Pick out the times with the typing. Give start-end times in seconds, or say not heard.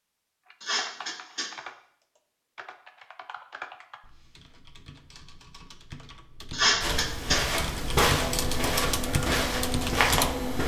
0.5-10.3.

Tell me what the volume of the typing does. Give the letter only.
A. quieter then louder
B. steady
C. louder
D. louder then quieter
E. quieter
A.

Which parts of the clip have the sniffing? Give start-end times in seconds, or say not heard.
0.6-1.5, 6.5-7.4.